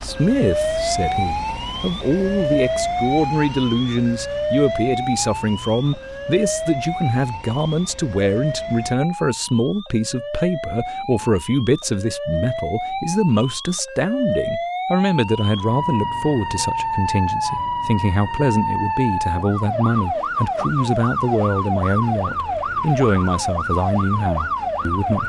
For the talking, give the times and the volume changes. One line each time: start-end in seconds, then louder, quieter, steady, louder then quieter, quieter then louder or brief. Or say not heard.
0.0-25.2 steady.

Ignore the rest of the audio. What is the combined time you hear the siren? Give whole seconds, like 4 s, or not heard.
25 s.